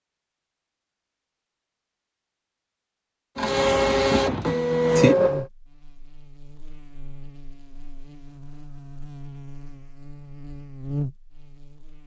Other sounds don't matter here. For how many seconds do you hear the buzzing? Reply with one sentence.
The buzzing can be heard for 7 seconds in total.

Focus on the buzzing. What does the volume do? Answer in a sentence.
The volume of the buzzing goes up.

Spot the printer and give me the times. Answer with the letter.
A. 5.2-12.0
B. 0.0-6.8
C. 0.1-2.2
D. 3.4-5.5
D.